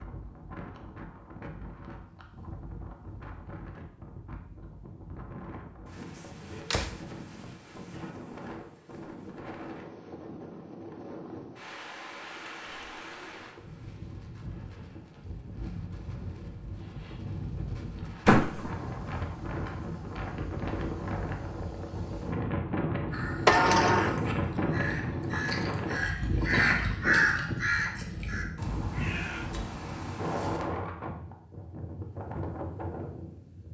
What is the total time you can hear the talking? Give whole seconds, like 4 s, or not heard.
not heard.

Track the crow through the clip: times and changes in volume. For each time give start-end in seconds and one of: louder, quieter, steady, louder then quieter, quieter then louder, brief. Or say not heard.
23.1-30.6 louder then quieter.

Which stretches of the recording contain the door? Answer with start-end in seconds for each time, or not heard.
6.7-8.1, 18.2-18.7, 23.4-24.1.